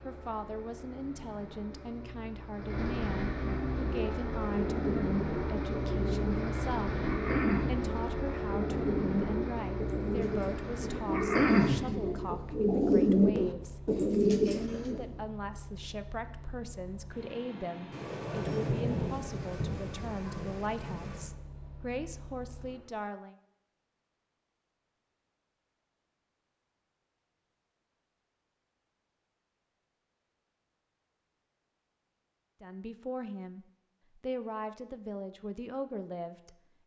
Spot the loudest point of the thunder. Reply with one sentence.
The volume of the thunder peaks at 19 seconds.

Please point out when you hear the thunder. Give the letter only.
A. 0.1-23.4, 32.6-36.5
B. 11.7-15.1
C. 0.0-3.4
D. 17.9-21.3
D.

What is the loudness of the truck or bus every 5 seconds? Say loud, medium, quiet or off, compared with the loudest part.
loud, loud, medium, quiet, quiet, off, off, off.